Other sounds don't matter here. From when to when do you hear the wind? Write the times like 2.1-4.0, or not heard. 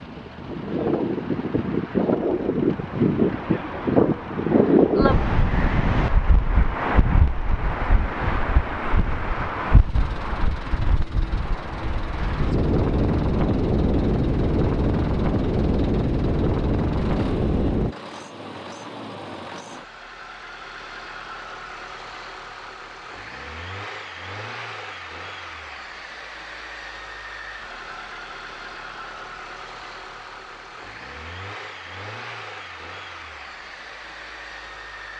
0.0-17.9.